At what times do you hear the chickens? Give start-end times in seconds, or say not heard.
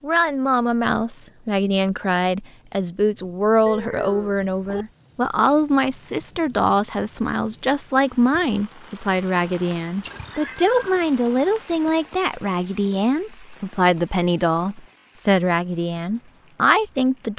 not heard.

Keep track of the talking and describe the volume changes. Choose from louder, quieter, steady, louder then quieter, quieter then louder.
steady.